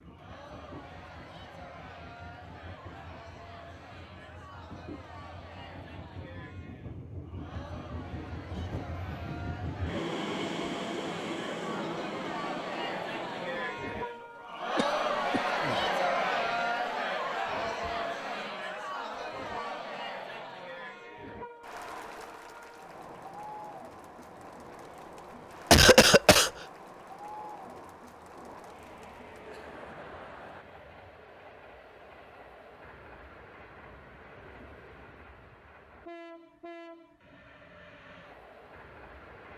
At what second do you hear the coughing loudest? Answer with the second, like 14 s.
26 s.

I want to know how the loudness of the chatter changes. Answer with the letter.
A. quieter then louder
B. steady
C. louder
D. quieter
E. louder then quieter
E.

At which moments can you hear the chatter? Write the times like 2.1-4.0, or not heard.
0.0-30.6.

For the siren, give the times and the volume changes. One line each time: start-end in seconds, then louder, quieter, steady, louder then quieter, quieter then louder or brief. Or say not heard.
not heard.